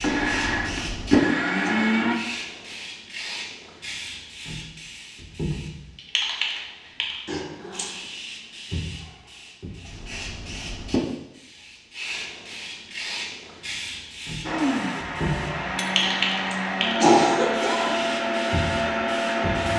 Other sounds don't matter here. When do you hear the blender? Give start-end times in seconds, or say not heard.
0.0-2.1, 14.4-19.7.